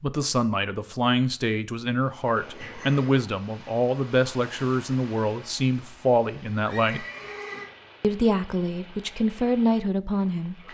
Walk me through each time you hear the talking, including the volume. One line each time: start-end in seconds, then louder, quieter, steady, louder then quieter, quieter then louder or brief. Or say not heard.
0.0-7.0 steady
8.0-10.6 brief.